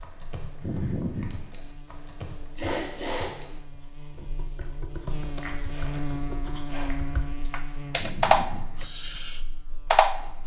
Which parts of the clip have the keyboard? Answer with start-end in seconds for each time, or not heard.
0.0-10.4.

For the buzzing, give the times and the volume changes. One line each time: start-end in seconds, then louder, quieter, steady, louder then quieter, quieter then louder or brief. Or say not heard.
0.0-10.4 louder then quieter.